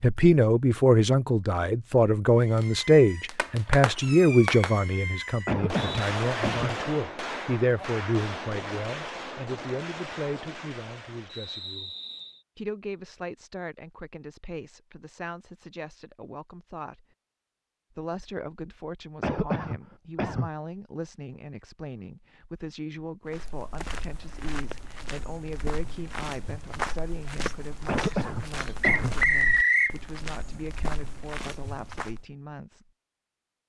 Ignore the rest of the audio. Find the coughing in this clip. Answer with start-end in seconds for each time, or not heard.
5.5-6.8, 19.2-20.5, 27.9-29.1.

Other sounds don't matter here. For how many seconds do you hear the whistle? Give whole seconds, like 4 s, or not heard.
3 s.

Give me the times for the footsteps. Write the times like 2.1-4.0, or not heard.
23.2-32.2.